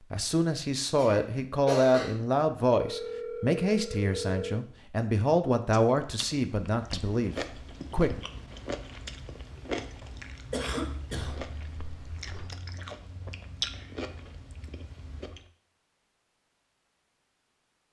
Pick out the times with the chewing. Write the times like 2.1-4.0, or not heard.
5.7-15.4.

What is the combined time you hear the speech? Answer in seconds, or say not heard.
8 s.